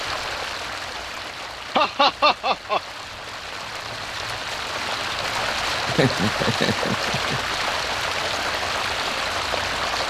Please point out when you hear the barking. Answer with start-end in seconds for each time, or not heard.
not heard.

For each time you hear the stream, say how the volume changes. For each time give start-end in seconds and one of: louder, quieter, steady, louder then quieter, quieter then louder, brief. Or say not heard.
0.0-10.0 louder.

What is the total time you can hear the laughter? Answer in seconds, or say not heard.
3 s.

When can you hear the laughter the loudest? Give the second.
2 s.